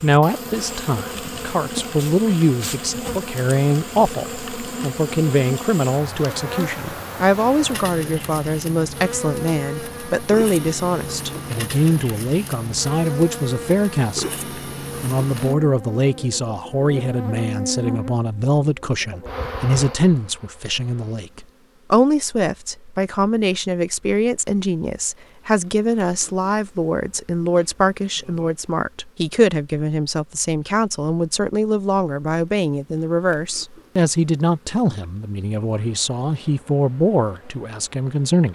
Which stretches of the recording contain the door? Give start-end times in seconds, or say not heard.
not heard.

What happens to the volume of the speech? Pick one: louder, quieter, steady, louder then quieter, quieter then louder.
steady.